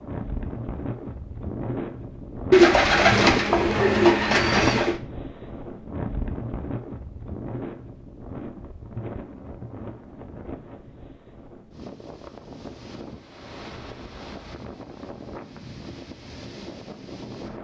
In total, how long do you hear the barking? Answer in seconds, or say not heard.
not heard.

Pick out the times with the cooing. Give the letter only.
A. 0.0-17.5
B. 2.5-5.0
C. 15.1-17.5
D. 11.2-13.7
B.